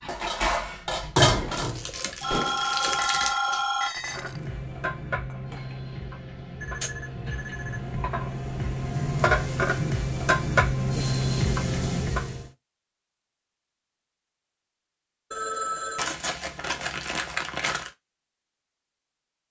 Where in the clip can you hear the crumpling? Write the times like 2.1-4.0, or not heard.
1.6-3.4, 15.9-17.9.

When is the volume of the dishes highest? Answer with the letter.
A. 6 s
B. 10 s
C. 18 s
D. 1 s
D.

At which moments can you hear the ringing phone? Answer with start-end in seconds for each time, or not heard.
2.2-3.9, 6.6-8.0, 15.3-16.1.